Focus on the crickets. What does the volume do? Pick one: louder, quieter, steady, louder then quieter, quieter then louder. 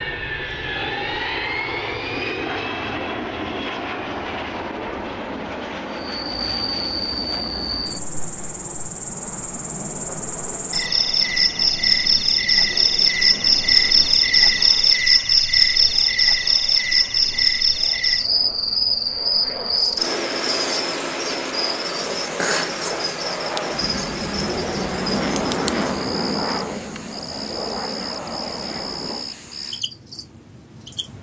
louder then quieter.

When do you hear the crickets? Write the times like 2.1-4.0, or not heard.
5.9-31.1.